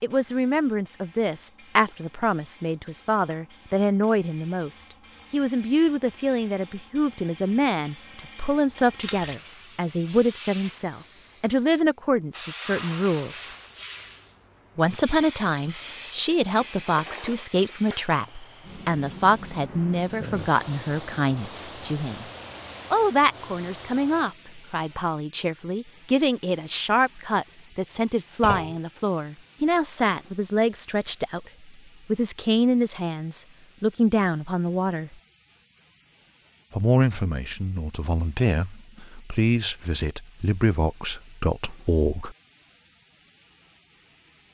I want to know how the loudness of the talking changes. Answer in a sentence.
The volume of the talking stays about the same.